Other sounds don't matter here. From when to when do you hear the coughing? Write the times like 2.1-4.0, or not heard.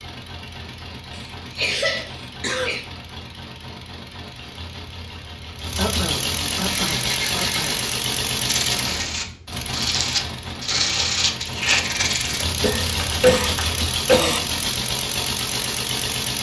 1.1-2.9, 5.8-7.8, 12.4-14.4.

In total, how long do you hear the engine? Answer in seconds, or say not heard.
16 s.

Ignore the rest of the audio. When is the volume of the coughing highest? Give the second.
13 s.